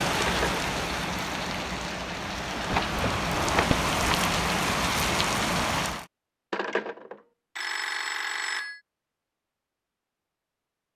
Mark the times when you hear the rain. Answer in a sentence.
You can hear the rain from 0.0 to 6.0 s.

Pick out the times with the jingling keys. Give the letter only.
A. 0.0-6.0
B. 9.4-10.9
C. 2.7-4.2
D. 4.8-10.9
C.